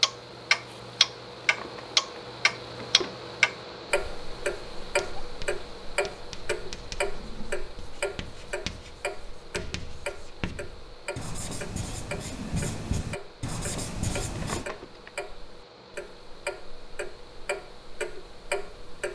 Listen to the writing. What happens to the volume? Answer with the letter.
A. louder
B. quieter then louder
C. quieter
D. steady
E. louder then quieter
A.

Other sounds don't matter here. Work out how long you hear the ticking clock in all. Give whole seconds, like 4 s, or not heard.
19 s.